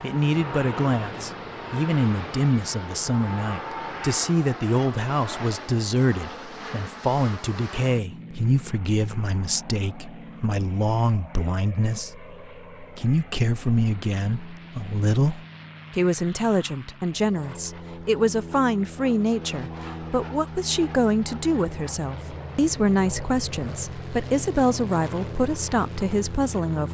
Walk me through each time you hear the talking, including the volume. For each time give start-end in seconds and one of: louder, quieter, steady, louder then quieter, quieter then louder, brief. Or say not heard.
0.0-26.8 steady.